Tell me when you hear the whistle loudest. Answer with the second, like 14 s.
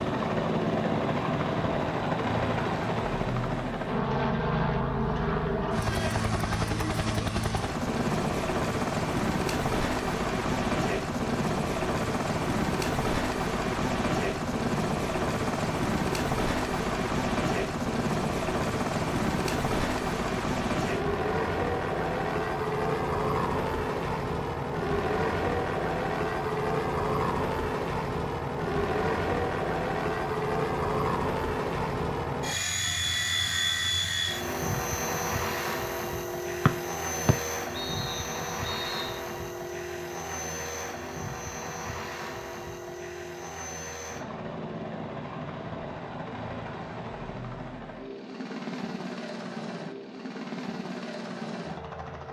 37 s.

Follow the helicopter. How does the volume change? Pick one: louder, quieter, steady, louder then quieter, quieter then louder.
quieter.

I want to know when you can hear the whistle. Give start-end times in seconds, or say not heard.
36.6-39.2.